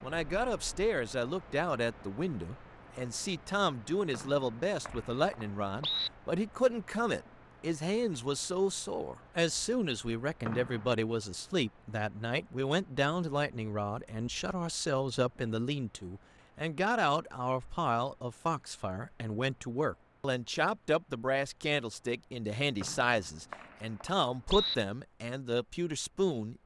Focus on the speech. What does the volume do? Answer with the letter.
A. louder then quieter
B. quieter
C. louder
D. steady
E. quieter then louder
D.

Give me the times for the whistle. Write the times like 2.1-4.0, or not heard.
4.1-6.1, 10.4-10.9, 22.8-24.8.